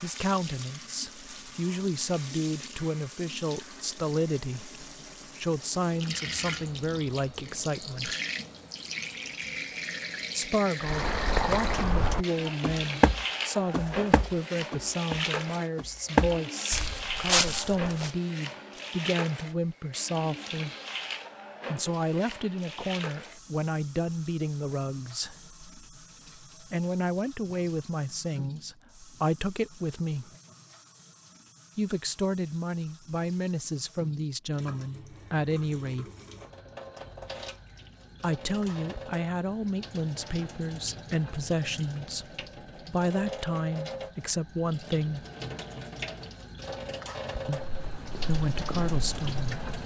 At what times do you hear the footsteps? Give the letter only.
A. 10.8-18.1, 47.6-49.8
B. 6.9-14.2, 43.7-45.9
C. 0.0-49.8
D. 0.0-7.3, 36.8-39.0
A.